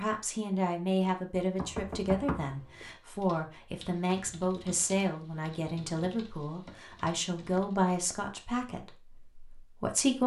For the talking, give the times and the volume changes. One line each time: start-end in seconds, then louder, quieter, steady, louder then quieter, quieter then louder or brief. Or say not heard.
0.0-10.2 quieter.